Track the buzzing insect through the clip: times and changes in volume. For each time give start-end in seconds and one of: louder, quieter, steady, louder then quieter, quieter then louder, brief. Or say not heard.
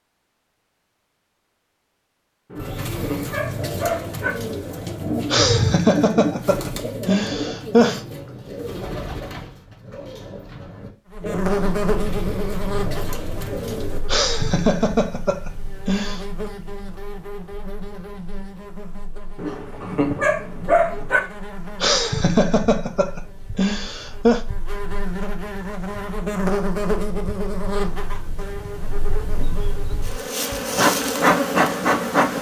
11.1-32.3 quieter then louder.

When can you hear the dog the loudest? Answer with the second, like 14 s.
21 s.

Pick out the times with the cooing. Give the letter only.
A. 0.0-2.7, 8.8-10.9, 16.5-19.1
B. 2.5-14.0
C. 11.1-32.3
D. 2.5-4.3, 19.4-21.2
B.